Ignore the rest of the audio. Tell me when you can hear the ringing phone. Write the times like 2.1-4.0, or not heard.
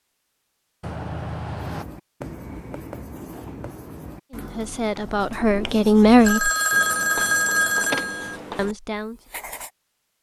0.8-1.9, 6.2-8.4.